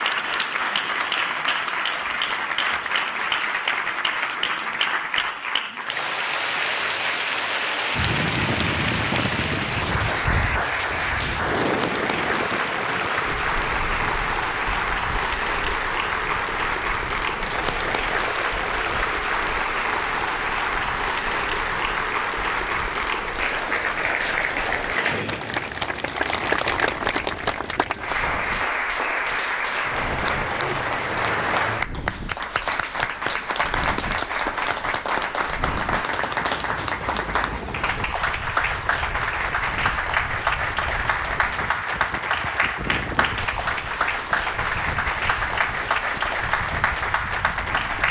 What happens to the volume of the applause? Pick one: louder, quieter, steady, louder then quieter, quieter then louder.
steady.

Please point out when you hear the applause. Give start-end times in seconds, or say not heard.
0.0-48.0.